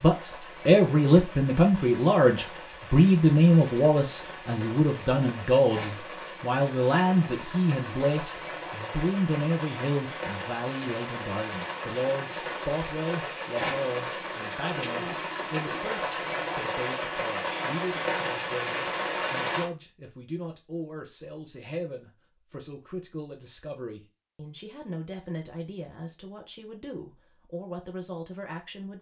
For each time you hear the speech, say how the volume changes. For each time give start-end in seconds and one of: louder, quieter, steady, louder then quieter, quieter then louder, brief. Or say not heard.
0.0-28.9 quieter.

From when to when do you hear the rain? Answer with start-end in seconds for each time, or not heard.
0.0-19.6.